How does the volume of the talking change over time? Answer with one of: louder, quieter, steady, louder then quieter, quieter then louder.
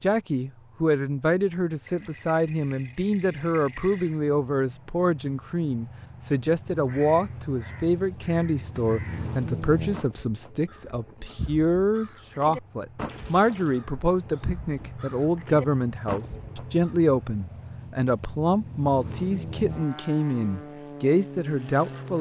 steady.